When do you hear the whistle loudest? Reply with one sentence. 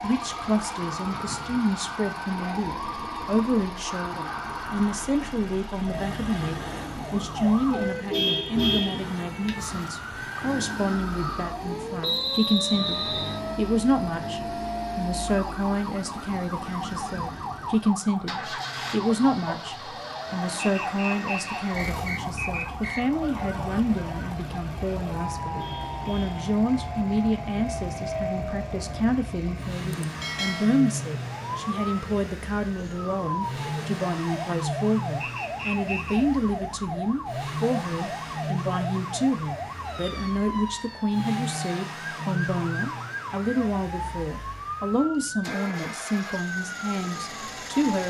The loudest moment of the whistle is at 12 seconds.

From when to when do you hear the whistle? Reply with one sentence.
The whistle can be heard from 12.0 to 13.4 s, from 20.6 to 23.1 s and from 35.2 to 36.2 s.